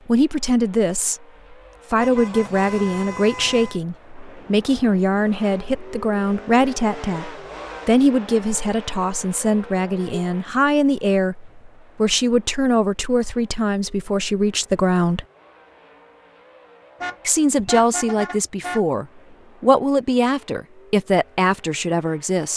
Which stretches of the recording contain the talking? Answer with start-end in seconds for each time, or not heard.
0.1-15.2, 17.2-22.5.